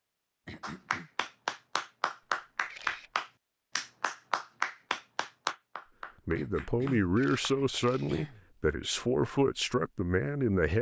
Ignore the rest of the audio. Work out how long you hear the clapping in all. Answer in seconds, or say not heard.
7 s.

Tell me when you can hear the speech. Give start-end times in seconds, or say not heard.
6.2-10.7.